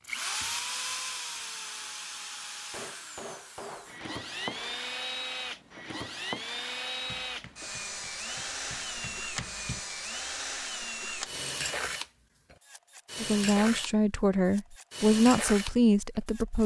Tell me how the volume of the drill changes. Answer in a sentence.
The volume of the drill stays about the same.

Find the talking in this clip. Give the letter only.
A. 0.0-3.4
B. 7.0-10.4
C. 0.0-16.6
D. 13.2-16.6
D.